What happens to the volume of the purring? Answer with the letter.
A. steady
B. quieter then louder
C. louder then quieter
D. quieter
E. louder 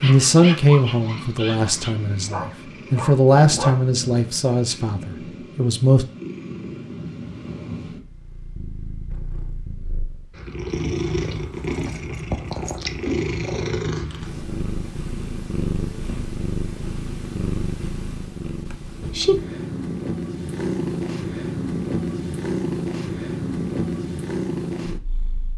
E.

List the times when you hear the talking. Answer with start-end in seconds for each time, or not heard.
0.0-6.0.